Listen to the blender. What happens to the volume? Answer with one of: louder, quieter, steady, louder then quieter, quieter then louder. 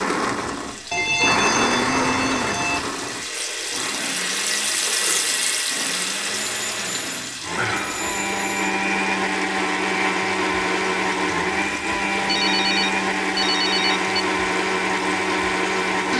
quieter then louder.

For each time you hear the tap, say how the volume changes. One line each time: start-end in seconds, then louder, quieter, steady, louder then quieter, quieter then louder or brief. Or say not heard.
0.0-16.1 louder then quieter.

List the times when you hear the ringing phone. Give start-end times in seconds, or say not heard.
0.9-2.9, 6.3-8.7, 12.2-14.2.